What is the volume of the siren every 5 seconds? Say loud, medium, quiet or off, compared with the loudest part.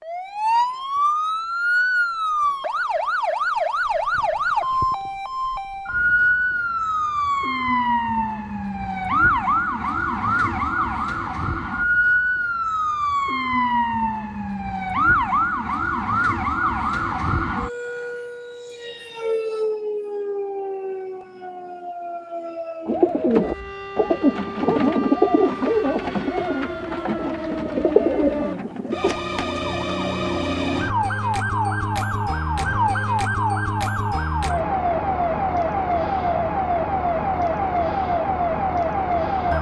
loud, loud, loud, loud, medium, medium, loud, loud.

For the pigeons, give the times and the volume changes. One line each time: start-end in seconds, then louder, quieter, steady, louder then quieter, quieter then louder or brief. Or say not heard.
22.9-29.1 quieter then louder.